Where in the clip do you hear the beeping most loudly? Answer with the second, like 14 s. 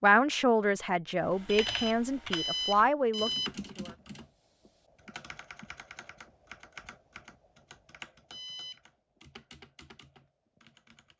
3 s.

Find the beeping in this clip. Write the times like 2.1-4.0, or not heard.
1.4-3.5, 8.3-8.8.